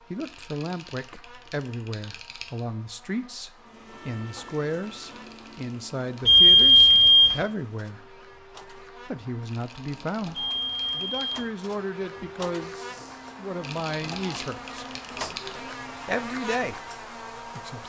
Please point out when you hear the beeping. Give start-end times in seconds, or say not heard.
6.2-7.4, 10.3-11.2.